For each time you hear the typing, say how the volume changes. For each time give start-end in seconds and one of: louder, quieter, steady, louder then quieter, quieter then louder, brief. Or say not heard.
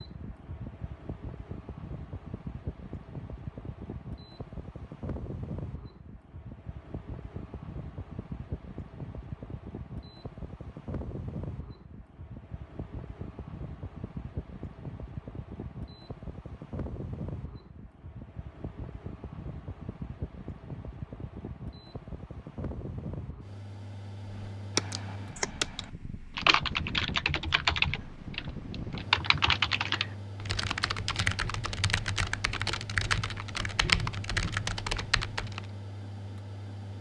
24.3-35.6 steady.